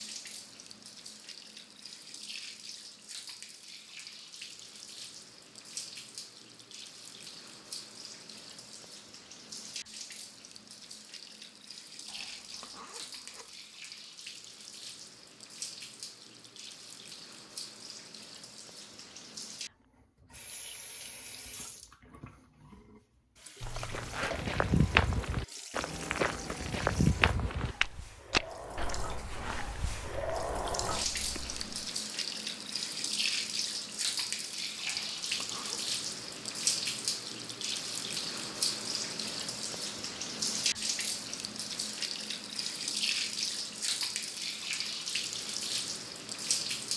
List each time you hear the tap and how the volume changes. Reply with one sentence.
You can hear the tap from 0.0 to 46.9 s, getting louder.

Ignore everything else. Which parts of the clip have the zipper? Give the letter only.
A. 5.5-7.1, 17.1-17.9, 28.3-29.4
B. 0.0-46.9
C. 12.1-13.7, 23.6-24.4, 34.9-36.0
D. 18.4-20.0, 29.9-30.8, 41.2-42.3
C.